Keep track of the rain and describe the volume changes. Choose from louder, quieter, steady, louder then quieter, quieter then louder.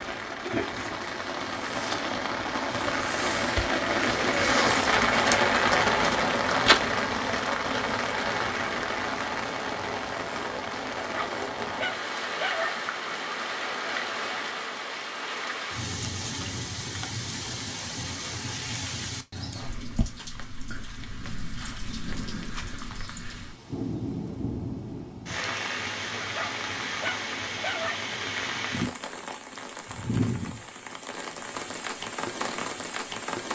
quieter.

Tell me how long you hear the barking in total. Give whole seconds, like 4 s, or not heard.
4 s.